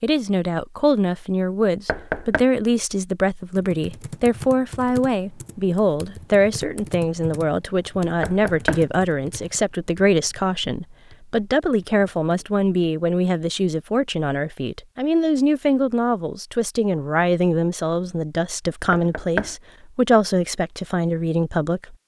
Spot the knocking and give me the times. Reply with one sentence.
The knocking can be heard from 1.9 to 2.5 s, from 8.2 to 8.8 s and from 18.9 to 19.6 s.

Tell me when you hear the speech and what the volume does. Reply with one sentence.
You can hear the speech from 0.0 to 21.9 s, at a steady volume.